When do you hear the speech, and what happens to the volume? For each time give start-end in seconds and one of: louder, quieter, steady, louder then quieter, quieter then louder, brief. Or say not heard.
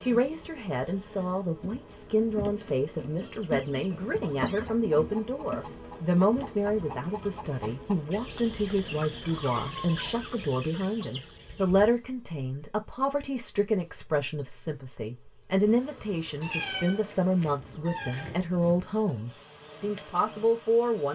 0.0-21.1 steady.